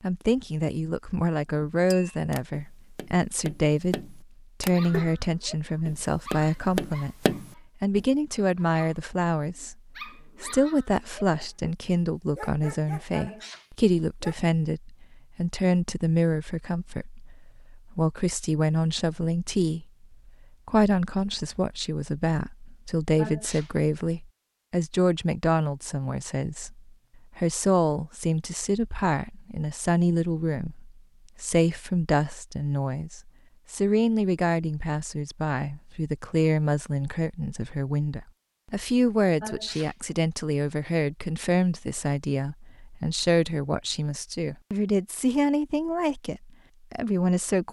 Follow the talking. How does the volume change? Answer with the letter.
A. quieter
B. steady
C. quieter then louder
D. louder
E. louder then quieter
B.